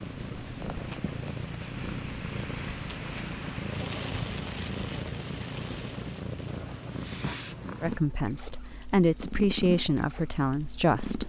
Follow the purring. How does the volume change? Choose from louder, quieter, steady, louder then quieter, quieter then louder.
steady.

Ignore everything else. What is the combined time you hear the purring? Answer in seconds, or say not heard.
11 s.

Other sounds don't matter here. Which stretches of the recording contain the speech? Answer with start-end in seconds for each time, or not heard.
7.8-11.2.